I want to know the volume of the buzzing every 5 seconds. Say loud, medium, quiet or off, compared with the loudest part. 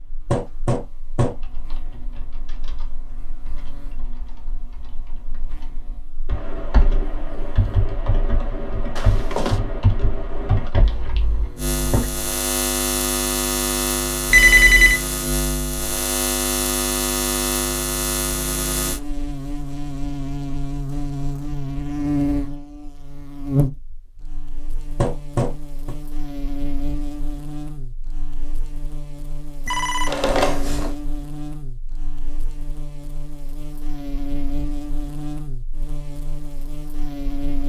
quiet, quiet, loud, loud, loud, medium, medium, medium.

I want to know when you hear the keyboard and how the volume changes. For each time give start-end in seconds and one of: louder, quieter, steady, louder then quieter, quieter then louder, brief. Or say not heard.
1.2-12.1 louder.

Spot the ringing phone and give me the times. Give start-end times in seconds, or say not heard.
8.9-9.6, 14.3-15.0, 29.6-30.9.